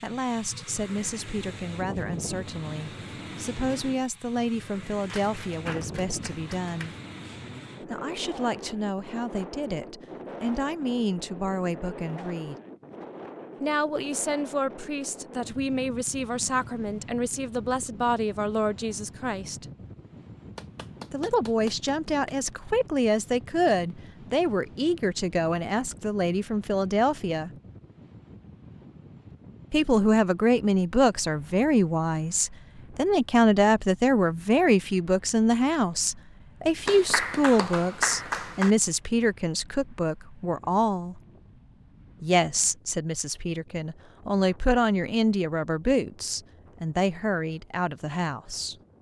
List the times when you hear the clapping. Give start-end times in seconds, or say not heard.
5.0-7.0, 20.6-22.5, 36.9-38.8.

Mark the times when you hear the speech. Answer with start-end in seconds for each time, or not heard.
0.0-7.0, 7.8-12.6, 13.6-19.6, 21.1-27.5, 29.7-41.2, 42.2-48.8.